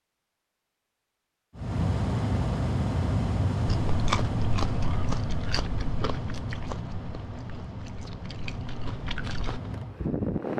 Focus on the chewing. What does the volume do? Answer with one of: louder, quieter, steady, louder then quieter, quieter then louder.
quieter then louder.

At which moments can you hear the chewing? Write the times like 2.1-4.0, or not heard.
3.9-9.6.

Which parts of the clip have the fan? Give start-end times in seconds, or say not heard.
1.6-10.5.